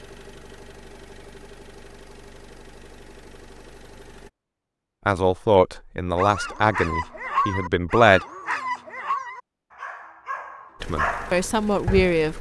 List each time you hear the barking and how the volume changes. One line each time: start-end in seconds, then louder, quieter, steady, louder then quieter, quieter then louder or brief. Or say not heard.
6.2-12.2 quieter then louder.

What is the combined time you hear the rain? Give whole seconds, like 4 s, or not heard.
not heard.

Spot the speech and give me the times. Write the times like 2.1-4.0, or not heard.
5.0-8.2, 10.8-12.3.